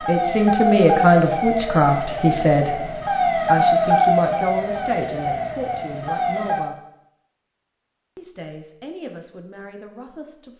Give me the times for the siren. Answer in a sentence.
You can hear the siren from 0.0 to 6.7 s.